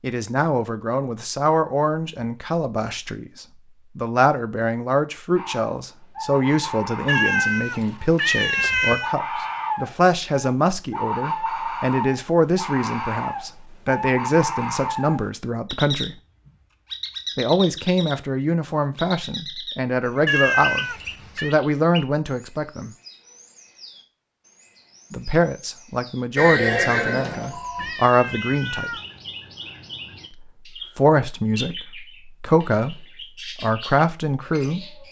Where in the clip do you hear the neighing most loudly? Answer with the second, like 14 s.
27 s.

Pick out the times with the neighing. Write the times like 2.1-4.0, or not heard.
26.4-27.9.